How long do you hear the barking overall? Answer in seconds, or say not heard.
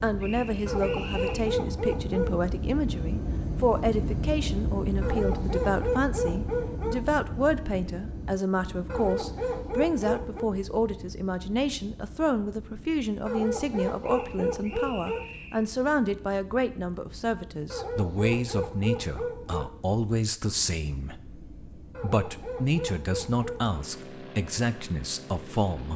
11 s.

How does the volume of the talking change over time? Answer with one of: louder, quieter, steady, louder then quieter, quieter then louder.
steady.